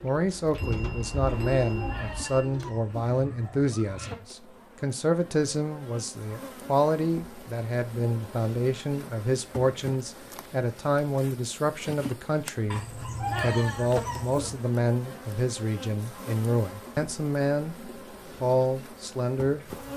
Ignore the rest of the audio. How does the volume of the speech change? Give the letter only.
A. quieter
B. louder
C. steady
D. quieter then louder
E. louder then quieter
C.